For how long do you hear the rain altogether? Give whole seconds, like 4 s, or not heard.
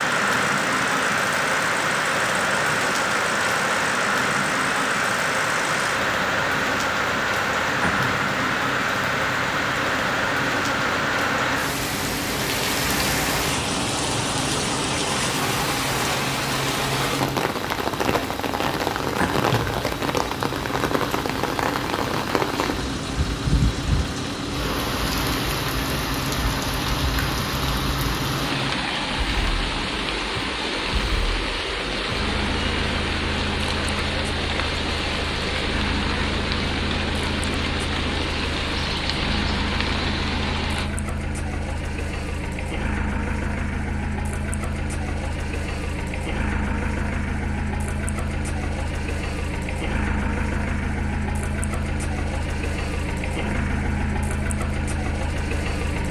41 s.